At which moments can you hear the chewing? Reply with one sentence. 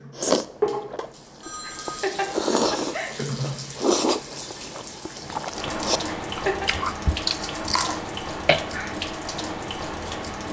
The chewing can be heard from 0.1 to 8.9 s.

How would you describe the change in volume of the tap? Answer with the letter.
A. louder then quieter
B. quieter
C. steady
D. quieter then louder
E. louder
C.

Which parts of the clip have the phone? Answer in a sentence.
The phone can be heard from 1.4 to 2.1 s.